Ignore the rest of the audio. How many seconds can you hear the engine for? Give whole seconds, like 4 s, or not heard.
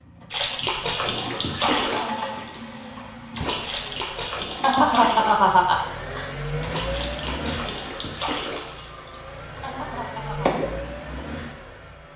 12 s.